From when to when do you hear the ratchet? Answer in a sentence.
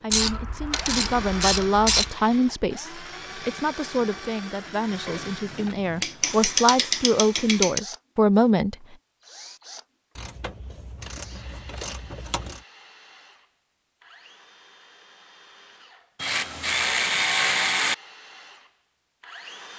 You can hear the ratchet from 0.1 to 2.1 s, from 5.0 to 7.8 s, from 10.2 to 12.6 s and from 16.1 to 17.9 s.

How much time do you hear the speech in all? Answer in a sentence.
You can hear the speech for 9 seconds altogether.